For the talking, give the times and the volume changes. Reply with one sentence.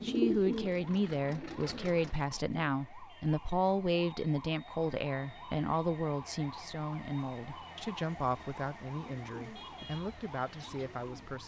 You can hear the talking from 0.0 to 11.4 s, getting quieter.